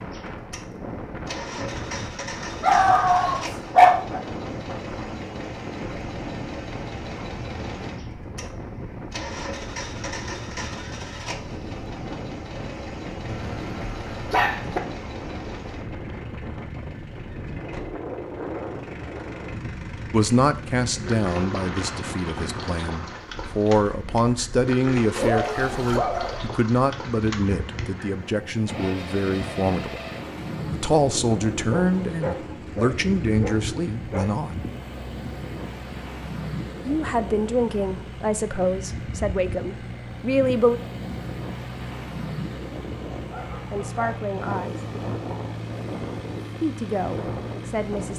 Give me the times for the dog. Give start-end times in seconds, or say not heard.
2.6-4.2, 13.2-14.8, 25.1-26.4, 31.7-34.5, 43.2-44.3.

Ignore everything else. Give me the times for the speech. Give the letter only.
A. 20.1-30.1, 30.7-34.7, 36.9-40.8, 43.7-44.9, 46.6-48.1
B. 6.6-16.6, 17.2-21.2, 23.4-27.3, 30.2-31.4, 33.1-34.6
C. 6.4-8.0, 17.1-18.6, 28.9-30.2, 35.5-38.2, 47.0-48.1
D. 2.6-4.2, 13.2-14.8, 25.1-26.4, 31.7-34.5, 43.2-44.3
A.